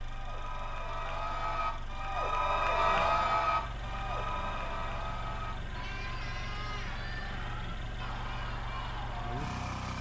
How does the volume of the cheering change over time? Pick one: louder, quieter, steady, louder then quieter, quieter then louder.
louder then quieter.